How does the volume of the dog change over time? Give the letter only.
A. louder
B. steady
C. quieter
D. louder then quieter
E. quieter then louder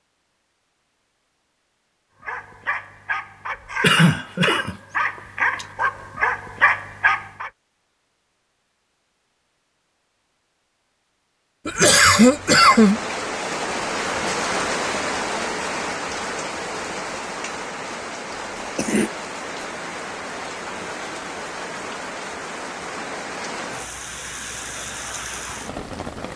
A.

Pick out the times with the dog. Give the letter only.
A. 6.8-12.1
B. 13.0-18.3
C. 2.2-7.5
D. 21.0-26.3
C.